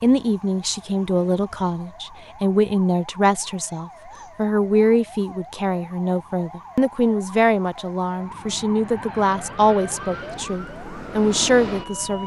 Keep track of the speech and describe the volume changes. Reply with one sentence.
The loudness of the speech stays about the same.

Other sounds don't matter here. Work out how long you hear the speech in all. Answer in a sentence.
You can hear the speech for 12 seconds altogether.